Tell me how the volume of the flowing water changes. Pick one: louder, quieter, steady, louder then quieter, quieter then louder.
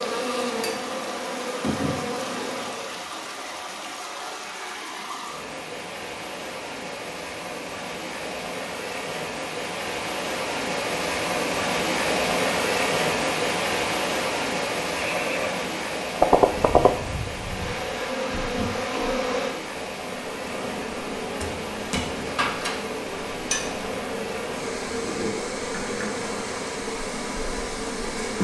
louder then quieter.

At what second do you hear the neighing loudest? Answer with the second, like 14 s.
16 s.